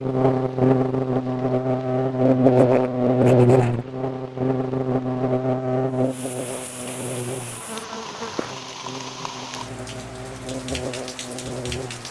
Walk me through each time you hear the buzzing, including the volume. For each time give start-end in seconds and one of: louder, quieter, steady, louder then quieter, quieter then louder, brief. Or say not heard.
0.0-12.0 quieter.